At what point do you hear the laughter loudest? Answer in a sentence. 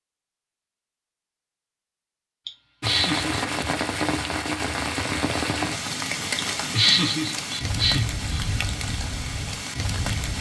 The loudest moment of the laughter is at 7 seconds.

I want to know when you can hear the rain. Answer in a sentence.
The rain can be heard from 2.8 to 10.3 s.